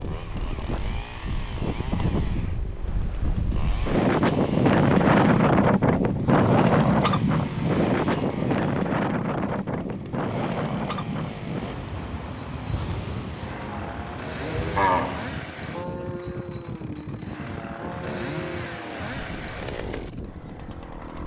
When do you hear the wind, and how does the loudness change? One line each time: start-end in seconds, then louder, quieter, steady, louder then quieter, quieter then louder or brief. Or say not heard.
0.0-21.2 louder then quieter.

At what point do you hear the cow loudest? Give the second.
15 s.